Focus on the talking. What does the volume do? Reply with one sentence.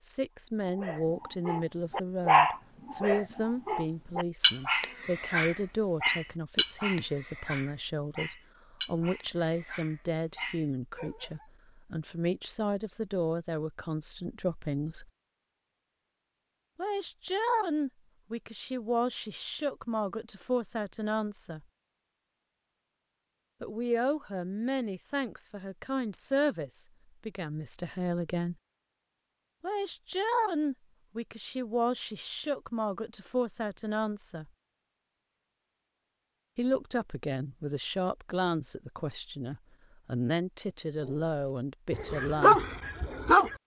The loudness of the talking stays about the same.